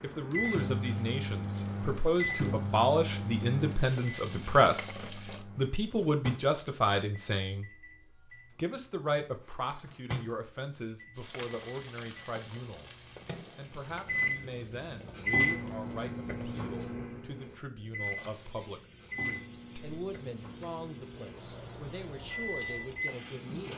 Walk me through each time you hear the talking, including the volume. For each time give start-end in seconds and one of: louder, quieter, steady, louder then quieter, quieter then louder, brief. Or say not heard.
0.0-23.7 quieter.